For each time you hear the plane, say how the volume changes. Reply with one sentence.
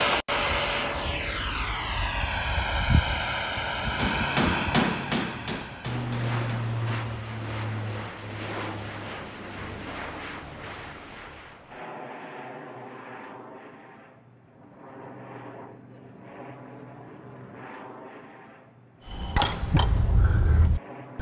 The plane can be heard from 0.0 to 21.1 s, getting quieter.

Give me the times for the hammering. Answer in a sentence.
You can hear the hammering from 4.0 to 7.0 s and from 19.1 to 21.1 s.